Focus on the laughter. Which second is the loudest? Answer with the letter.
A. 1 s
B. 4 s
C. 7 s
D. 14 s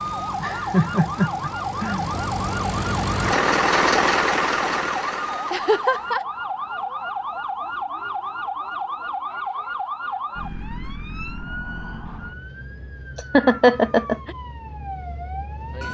D.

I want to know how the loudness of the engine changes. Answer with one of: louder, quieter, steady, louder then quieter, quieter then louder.
louder then quieter.